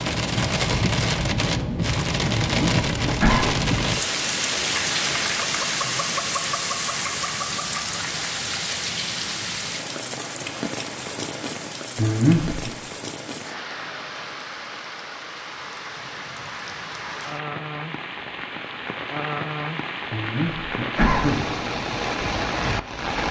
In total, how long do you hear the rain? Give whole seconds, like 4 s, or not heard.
23 s.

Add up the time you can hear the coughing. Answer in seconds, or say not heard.
3 s.